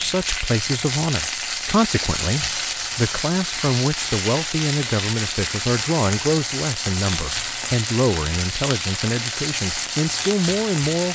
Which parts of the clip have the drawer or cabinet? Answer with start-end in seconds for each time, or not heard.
not heard.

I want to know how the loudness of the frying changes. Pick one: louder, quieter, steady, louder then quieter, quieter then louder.
steady.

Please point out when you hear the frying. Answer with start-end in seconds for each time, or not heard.
0.0-11.0.